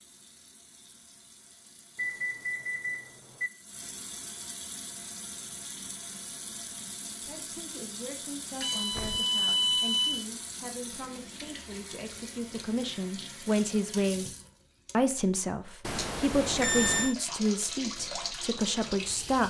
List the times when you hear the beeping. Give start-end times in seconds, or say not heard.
1.9-3.5, 8.6-10.2, 15.8-17.1.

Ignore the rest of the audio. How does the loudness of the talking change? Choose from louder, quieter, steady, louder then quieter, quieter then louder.
louder.